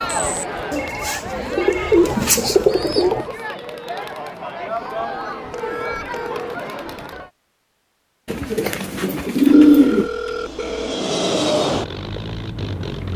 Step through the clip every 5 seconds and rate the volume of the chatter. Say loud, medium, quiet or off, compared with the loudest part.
loud, loud, off.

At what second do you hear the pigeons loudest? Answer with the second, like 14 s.
10 s.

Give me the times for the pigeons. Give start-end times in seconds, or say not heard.
0.7-3.2, 8.2-10.1.